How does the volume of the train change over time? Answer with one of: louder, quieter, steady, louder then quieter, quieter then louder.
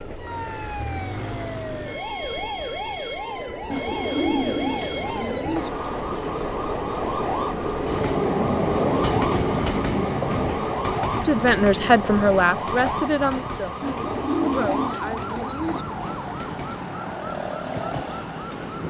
louder then quieter.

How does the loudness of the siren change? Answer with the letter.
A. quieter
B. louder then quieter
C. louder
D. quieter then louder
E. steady
E.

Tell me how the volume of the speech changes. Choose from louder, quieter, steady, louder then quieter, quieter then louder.
quieter then louder.